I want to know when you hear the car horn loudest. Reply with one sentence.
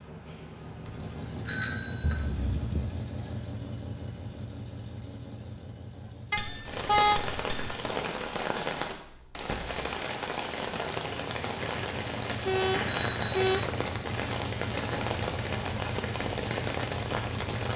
The volume of the car horn peaks at 7 seconds.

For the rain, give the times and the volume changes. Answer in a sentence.
You can hear the rain from 6.7 to 17.7 s, at a steady volume.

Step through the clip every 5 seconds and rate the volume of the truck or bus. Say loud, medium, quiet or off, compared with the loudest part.
loud, medium, loud, loud.